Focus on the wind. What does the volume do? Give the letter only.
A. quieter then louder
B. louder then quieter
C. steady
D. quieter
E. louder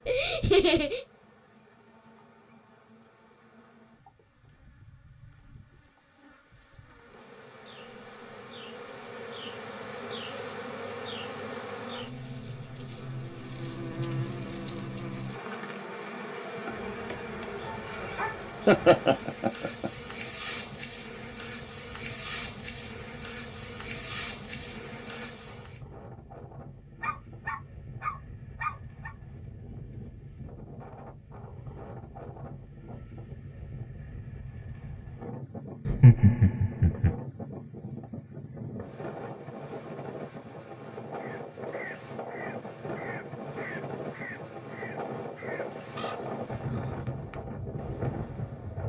E.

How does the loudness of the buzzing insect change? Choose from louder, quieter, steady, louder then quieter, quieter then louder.
louder.